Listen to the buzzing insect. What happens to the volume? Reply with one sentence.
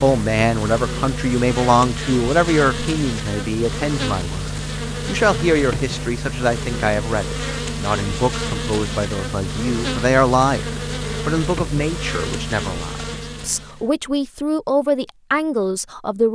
The volume of the buzzing insect stays about the same.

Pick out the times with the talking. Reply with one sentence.
The talking can be heard from 0.0 to 16.2 s.